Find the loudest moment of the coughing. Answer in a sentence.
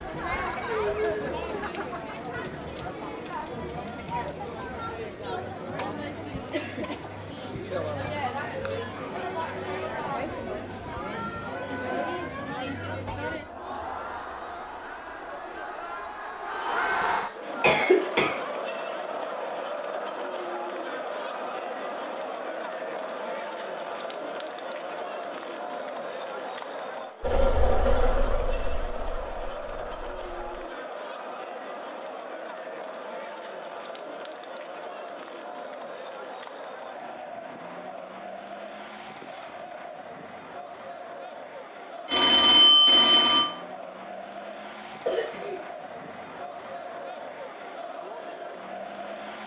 The volume of the coughing peaks at 18 seconds.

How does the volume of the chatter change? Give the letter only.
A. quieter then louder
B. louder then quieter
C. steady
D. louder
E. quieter
E.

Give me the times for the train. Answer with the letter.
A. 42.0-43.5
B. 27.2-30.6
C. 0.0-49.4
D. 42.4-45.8
B.